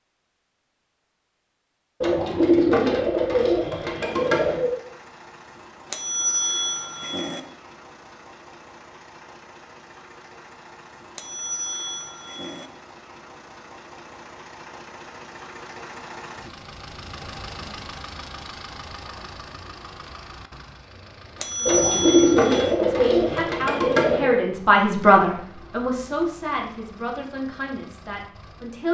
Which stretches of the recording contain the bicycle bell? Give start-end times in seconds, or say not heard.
5.9-7.4, 11.2-12.7, 21.4-22.8.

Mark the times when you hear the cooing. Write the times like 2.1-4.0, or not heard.
2.0-4.8, 21.6-24.4.